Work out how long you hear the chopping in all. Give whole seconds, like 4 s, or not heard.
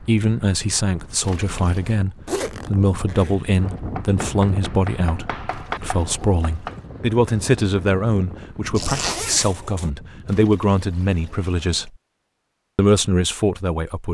3 s.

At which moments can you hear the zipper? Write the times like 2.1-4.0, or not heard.
2.2-3.4, 8.8-9.9.